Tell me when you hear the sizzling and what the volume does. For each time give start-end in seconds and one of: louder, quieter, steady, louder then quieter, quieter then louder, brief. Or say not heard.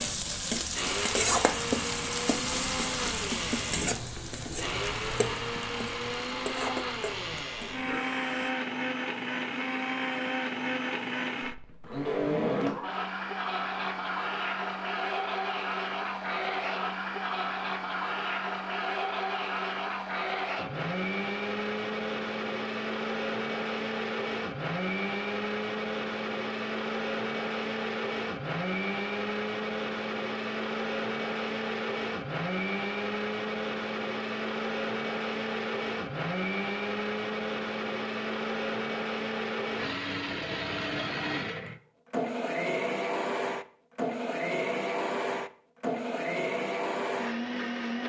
0.0-8.5 quieter.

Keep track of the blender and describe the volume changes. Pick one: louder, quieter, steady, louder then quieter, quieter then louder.
steady.